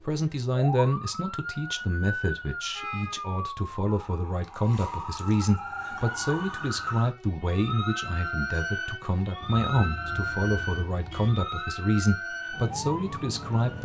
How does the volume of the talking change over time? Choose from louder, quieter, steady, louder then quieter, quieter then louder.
steady.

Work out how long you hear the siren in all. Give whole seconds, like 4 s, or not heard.
14 s.